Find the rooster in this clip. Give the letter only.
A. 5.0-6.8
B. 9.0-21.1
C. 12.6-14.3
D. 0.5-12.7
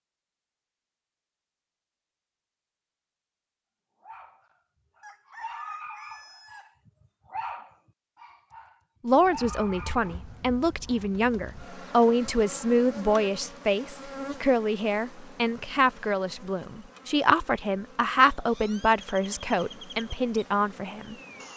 A.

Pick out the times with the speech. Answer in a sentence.
The speech can be heard from 9.0 to 21.1 s.